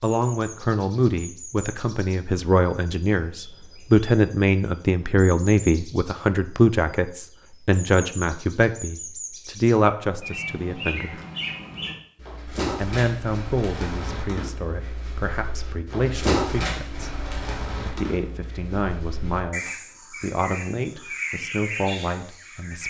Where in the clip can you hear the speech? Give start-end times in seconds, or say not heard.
0.0-11.2, 12.8-17.1, 17.9-22.8.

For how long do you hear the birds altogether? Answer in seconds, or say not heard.
23 s.